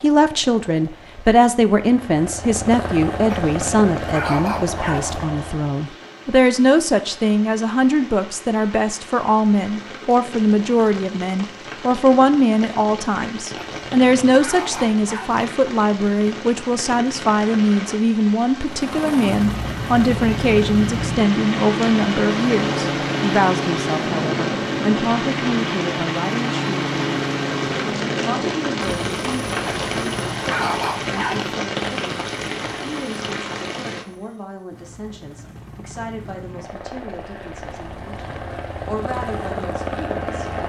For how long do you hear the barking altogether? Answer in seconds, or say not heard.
6 s.